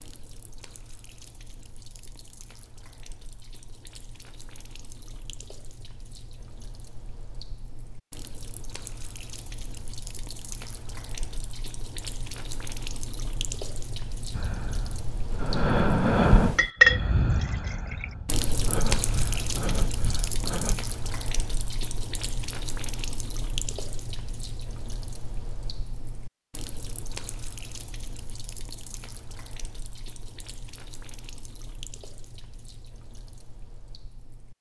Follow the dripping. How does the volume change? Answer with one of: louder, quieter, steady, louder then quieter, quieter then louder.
louder then quieter.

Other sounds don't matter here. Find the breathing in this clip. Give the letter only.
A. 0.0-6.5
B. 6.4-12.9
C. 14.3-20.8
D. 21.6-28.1
C.